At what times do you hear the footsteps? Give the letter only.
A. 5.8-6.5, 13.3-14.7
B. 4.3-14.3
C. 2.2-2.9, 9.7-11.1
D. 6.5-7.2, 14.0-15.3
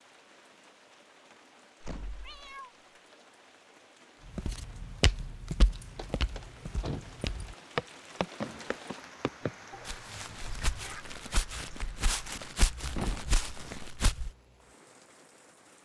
B.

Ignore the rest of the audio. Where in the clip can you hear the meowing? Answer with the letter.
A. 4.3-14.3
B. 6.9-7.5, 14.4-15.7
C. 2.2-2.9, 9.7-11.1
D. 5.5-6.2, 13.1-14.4
C.